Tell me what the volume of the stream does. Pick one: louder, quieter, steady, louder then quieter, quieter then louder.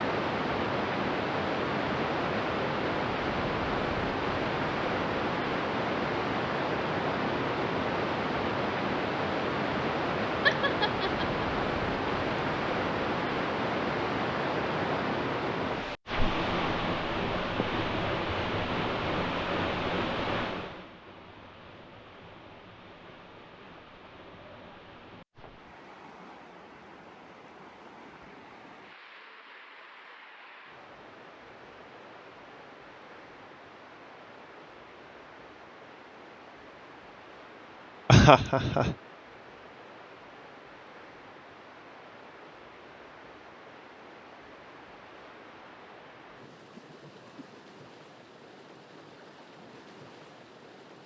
quieter.